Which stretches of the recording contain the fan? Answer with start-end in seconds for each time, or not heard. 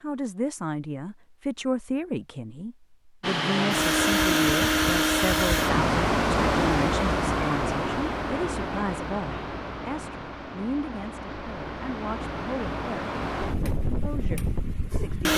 3.2-15.3.